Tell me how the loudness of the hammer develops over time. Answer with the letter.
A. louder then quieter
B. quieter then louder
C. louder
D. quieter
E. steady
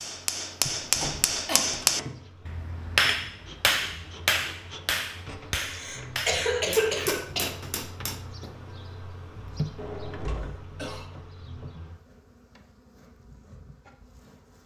D.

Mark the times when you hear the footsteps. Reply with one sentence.
The footsteps can't be heard in this clip.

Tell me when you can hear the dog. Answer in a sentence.
You can't hear the dog here.